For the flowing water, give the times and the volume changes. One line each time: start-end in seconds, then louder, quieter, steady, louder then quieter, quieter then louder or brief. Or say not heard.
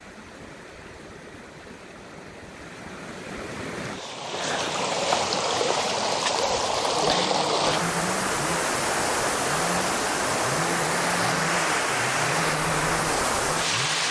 0.0-14.0 louder.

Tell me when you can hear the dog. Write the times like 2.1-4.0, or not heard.
not heard.